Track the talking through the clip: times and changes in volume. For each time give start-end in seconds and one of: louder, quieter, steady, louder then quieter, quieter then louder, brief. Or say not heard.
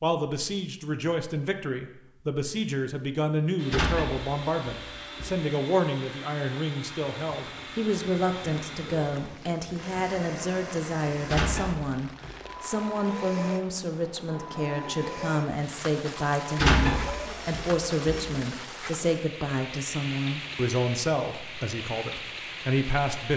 0.0-23.3 steady.